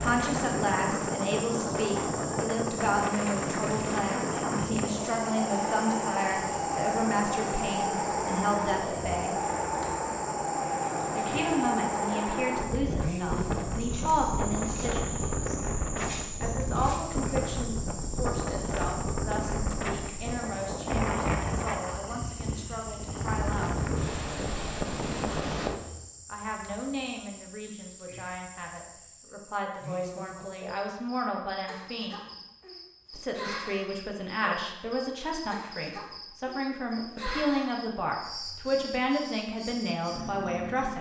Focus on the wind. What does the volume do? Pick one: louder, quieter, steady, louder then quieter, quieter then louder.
steady.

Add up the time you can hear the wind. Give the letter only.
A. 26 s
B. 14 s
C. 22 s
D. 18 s
A.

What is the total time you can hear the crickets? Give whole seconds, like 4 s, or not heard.
41 s.